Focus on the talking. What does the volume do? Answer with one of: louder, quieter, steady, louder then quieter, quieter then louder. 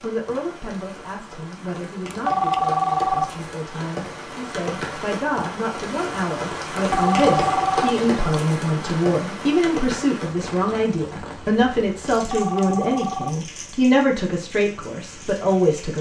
louder.